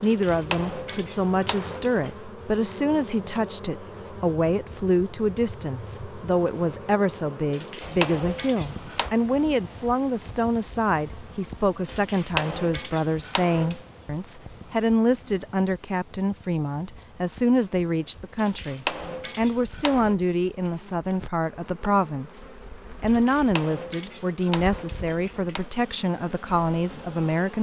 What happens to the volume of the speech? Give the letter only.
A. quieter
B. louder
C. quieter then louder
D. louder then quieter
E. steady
E.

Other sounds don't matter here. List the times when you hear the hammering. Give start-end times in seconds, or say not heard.
0.0-2.1, 7.5-9.1, 11.8-13.8, 18.4-20.2, 23.1-25.7.